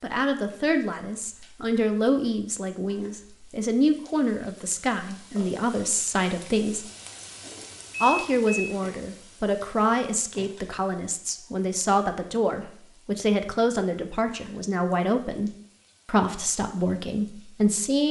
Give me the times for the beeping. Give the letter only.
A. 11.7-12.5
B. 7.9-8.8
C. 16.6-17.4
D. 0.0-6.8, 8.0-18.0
B.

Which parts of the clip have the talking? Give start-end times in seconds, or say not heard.
0.0-6.8, 8.0-18.0.